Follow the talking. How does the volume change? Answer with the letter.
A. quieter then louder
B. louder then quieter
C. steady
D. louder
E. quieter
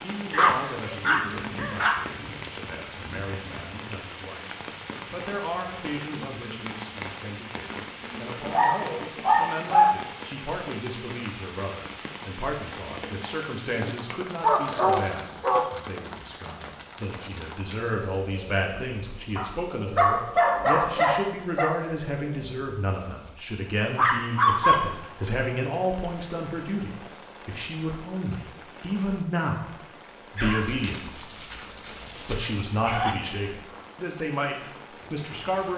D.